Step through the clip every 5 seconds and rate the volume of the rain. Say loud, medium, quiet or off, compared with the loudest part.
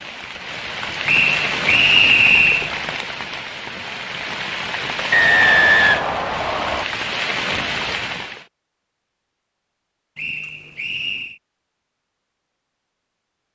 loud, loud, off.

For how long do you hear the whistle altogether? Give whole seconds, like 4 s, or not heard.
5 s.